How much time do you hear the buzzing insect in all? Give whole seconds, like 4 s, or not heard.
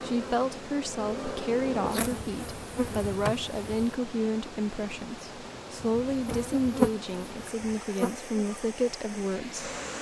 8 s.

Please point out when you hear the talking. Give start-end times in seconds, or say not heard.
0.0-9.7.